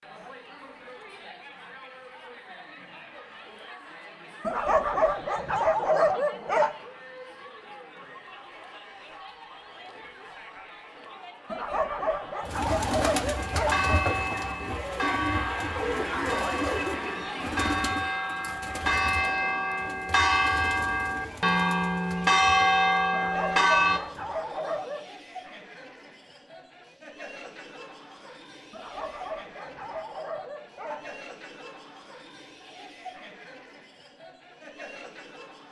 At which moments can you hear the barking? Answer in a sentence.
You can hear the barking from 4.5 to 6.7 s, from 11.5 to 13.9 s, from 23.1 to 25.1 s and from 28.7 to 31.2 s.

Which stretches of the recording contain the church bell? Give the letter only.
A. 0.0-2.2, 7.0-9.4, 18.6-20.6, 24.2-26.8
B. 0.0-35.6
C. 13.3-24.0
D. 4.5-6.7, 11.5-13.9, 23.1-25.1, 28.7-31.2
C.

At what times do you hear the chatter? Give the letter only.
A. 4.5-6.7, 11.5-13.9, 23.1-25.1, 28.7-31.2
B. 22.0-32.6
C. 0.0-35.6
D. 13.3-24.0
C.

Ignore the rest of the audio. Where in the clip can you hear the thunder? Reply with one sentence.
The thunder can't be heard in this clip.